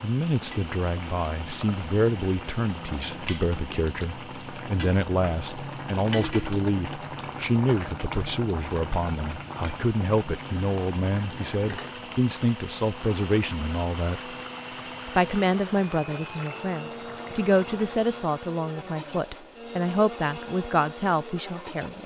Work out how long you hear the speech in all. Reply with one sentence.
You can hear the speech for 21 seconds altogether.